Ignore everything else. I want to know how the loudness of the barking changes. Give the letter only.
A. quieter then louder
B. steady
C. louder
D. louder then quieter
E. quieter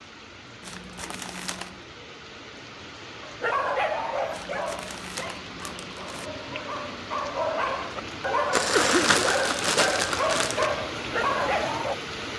A.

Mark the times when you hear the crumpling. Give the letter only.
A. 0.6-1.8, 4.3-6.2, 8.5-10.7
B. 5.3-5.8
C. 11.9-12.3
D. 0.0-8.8
A.